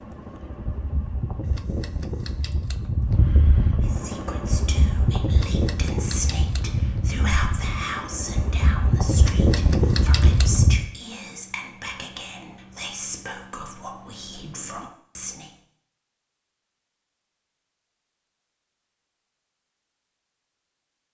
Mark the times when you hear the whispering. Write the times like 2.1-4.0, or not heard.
3.8-15.5.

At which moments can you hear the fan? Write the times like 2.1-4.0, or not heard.
0.0-10.8.